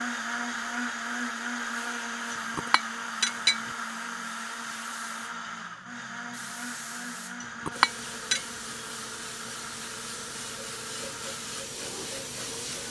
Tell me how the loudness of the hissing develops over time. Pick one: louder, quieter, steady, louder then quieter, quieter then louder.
louder.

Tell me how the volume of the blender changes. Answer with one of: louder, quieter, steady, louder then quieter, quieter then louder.
quieter.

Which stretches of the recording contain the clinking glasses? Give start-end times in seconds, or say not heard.
2.3-3.7, 7.4-8.4.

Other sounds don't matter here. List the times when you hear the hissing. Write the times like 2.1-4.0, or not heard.
0.0-12.8.